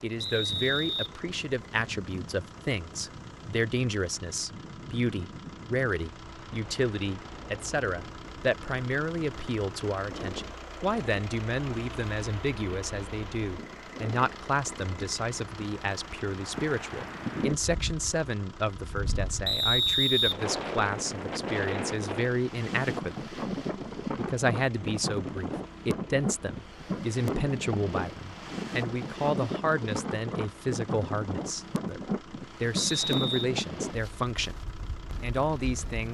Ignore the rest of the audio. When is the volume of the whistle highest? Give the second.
20 s.